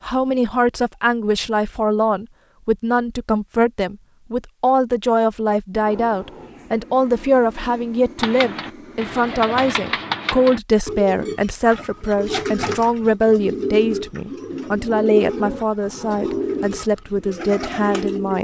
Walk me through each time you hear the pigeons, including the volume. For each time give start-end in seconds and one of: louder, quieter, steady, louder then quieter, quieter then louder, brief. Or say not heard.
8.2-18.4 steady.